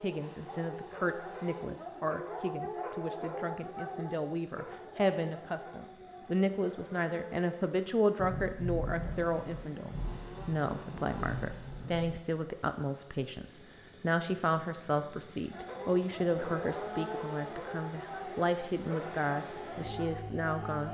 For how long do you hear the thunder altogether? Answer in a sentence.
You can hear the thunder for 4 seconds altogether.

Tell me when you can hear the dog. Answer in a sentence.
The dog can be heard from 0.0 to 6.3 s and from 15.5 to 20.9 s.